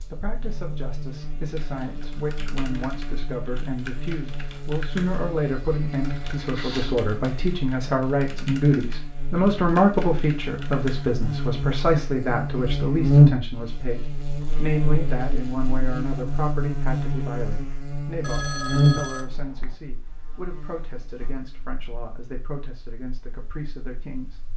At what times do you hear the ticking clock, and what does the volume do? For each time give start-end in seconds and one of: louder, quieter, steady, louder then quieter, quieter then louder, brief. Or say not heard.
not heard.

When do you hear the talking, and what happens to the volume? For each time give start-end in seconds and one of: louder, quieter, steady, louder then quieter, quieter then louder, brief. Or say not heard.
0.0-24.4 louder then quieter.